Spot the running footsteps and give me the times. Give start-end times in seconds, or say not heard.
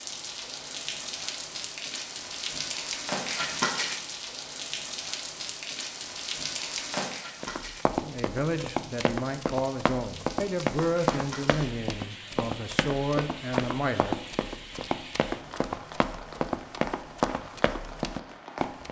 7.4-18.8.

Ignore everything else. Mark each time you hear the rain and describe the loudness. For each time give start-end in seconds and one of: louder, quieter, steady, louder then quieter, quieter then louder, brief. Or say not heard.
0.0-18.8 quieter.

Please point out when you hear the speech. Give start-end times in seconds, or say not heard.
8.0-14.2.